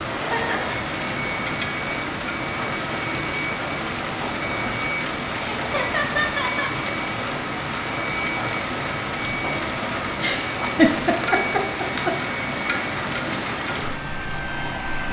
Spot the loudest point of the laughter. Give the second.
11 s.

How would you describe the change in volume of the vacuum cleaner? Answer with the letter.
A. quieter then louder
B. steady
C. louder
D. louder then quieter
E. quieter
B.